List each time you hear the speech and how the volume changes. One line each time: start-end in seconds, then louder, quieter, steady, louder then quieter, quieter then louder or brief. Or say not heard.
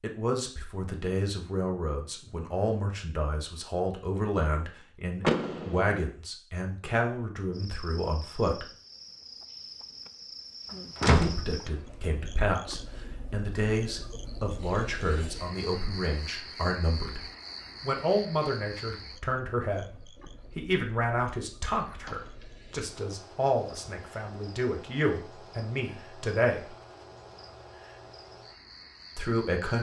0.0-8.7 steady
11.1-26.8 steady
29.1-29.7 brief.